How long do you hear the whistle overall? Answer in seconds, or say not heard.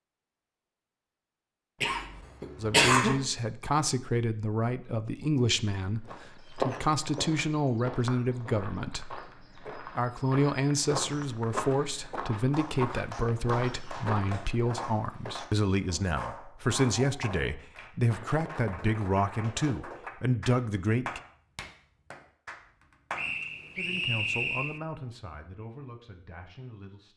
2 s.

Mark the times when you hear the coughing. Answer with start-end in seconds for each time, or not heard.
1.8-3.2.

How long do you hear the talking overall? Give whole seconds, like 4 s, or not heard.
22 s.